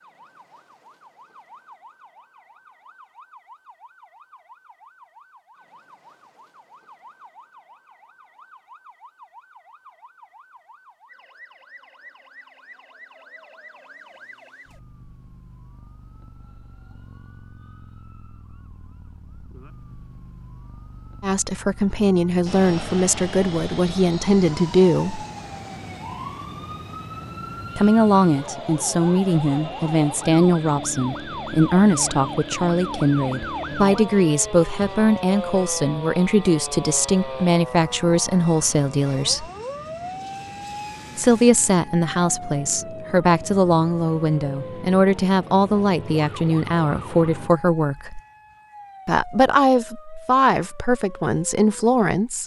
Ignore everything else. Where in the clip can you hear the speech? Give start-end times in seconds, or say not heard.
21.2-25.2, 27.8-39.5, 41.1-48.2, 49.0-52.4.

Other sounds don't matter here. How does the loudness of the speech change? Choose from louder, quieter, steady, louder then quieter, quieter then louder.
steady.